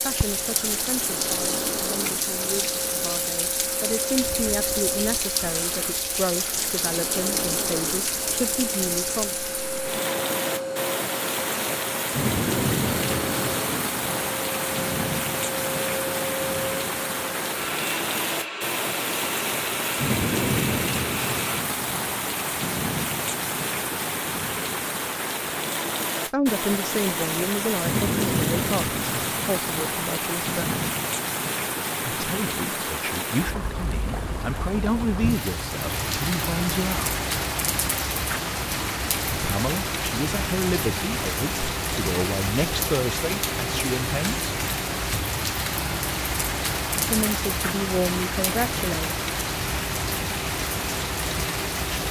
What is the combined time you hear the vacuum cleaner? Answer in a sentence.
The vacuum cleaner can be heard for 22 seconds in total.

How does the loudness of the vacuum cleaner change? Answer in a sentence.
The loudness of the vacuum cleaner stays about the same.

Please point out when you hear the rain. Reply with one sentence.
The rain can be heard from 0.0 to 52.0 s.